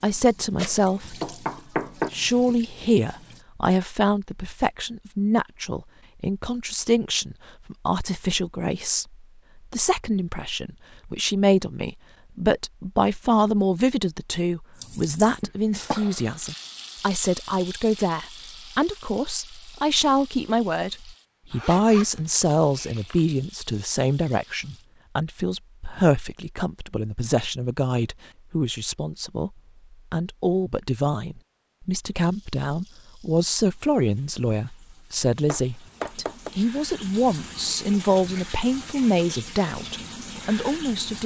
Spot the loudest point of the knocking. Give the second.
2 s.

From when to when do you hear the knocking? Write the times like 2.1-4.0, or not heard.
0.6-2.1, 15.4-16.0, 35.5-36.5.